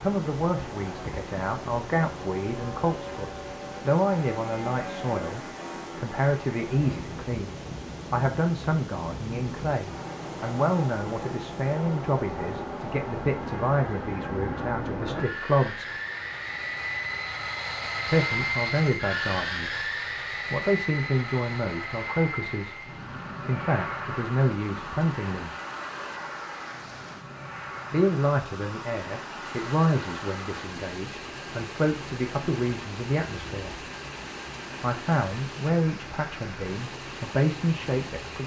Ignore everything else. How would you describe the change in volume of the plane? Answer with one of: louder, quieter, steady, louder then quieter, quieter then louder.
louder then quieter.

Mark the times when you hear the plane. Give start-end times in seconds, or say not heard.
0.0-38.4.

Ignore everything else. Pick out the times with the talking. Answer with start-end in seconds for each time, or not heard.
0.0-15.9, 18.1-19.9, 20.5-25.6, 27.9-33.8, 34.8-38.4.